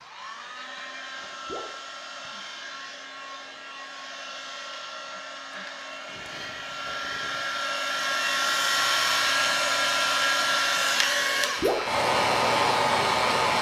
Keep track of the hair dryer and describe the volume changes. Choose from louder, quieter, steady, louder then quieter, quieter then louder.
louder.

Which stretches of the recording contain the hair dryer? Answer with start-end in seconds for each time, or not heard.
0.0-13.5.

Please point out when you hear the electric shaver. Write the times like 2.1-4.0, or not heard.
8.8-13.5.